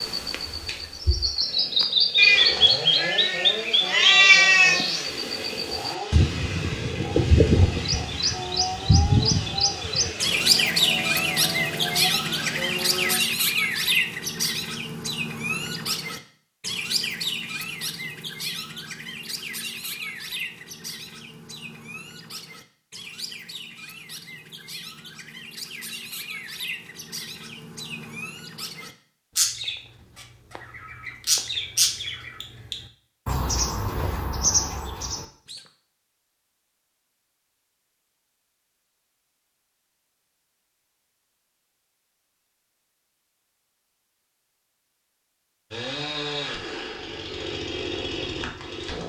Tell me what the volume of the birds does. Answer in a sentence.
The volume of the birds goes down, then up.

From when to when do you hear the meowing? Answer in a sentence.
You can hear the meowing from 2.1 to 4.8 s.